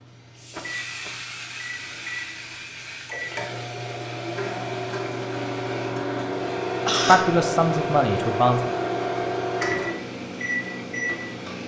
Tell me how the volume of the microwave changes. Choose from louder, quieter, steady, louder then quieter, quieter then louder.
louder.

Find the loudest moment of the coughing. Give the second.
7 s.